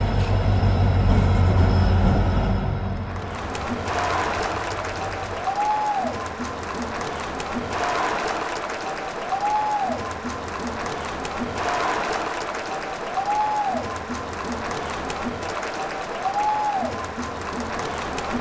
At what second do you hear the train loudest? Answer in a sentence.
The volume of the train peaks at 2 seconds.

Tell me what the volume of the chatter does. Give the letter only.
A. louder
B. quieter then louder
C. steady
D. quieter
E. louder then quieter
C.